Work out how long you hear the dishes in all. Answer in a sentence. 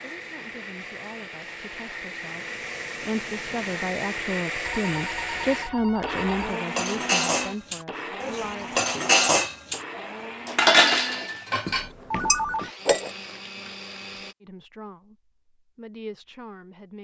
The dishes can be heard for 6 seconds in total.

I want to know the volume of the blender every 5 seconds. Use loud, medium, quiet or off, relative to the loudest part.
loud, loud, medium, off.